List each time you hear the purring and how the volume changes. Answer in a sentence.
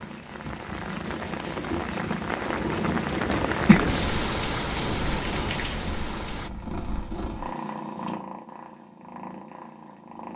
The purring can be heard from 0.0 to 10.3 s, getting louder then quieter.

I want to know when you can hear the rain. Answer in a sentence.
You can hear the rain from 0.0 to 6.5 s.